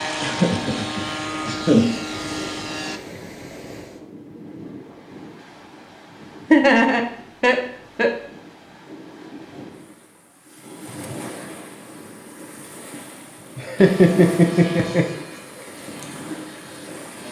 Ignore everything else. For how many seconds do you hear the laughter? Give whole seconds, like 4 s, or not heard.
5 s.